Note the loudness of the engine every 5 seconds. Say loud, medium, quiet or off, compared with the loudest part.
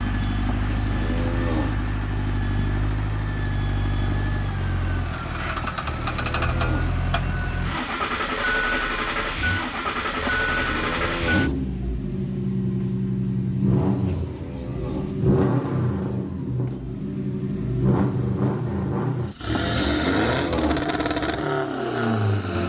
medium, loud, loud, loud, loud.